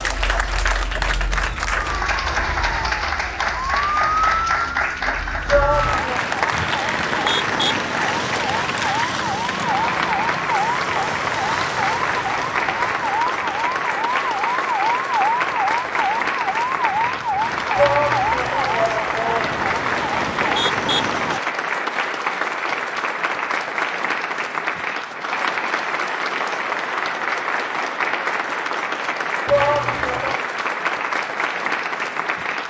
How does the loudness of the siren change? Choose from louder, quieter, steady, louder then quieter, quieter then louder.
steady.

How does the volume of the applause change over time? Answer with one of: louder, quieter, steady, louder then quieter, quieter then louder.
steady.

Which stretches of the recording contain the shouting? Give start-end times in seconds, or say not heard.
5.5-6.3, 17.8-19.6, 29.4-30.4.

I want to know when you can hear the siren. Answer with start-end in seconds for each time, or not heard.
0.0-21.4.